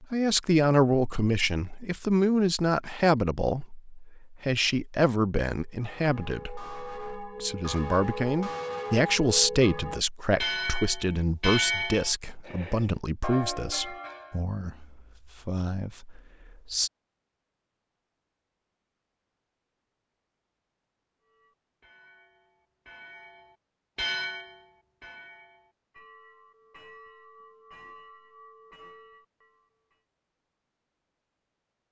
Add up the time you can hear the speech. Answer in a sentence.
The speech can be heard for 17 seconds in total.